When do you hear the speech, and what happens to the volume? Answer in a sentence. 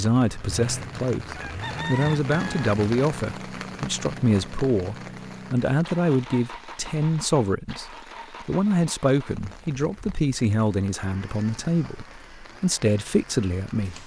The speech can be heard from 0.0 to 14.0 s, at a steady volume.